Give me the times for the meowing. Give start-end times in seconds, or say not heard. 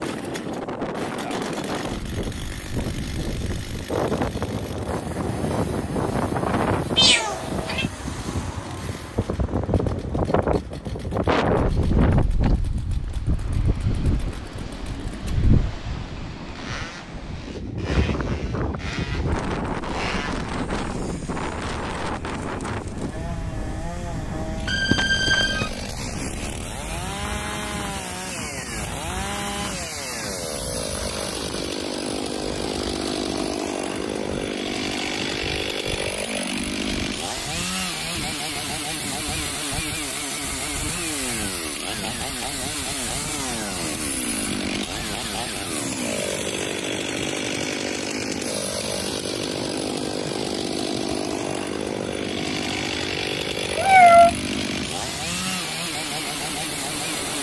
7.0-7.8, 24.6-25.7, 53.8-54.3.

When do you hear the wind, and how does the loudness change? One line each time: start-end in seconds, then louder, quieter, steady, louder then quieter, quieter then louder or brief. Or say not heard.
0.0-57.3 quieter.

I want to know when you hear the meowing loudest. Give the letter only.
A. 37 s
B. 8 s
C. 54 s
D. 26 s
C.